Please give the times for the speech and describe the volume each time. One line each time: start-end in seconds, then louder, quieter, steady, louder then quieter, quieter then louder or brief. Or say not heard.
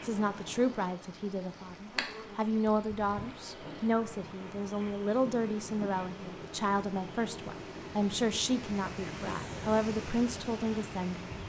0.0-11.3 steady.